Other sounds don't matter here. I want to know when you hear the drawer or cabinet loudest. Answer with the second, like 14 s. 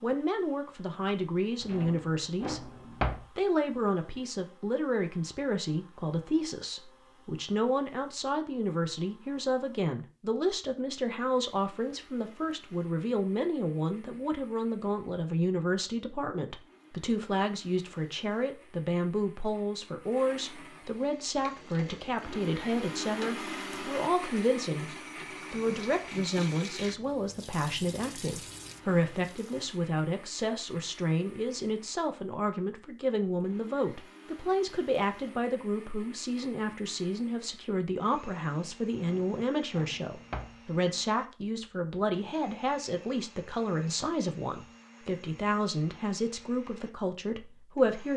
3 s.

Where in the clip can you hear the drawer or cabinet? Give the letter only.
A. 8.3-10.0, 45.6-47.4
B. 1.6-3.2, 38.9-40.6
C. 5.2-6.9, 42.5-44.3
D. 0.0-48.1
B.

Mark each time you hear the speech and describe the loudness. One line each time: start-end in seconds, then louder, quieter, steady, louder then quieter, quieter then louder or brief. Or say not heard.
0.0-48.1 steady.